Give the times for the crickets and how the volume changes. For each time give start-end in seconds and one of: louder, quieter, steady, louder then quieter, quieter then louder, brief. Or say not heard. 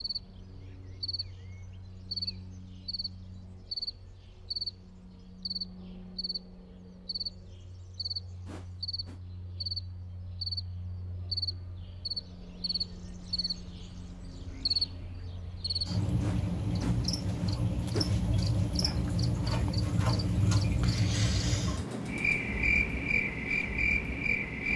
0.0-24.7 louder.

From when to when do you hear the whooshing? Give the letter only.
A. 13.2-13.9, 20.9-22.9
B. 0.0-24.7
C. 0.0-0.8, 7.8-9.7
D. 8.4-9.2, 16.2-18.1
D.